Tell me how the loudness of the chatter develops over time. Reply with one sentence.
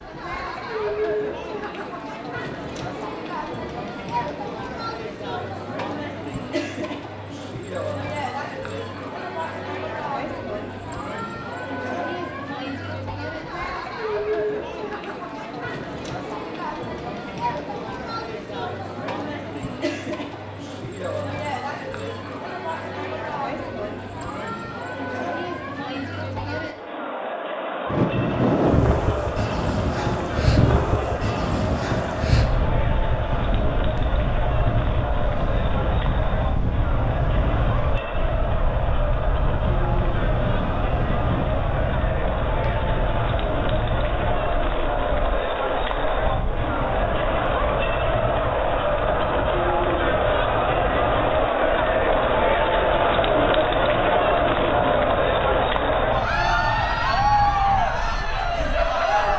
The volume of the chatter goes up.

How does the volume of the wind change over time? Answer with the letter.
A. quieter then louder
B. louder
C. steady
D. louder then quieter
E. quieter
E.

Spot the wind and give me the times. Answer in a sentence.
You can hear the wind from 27.9 to 59.3 s.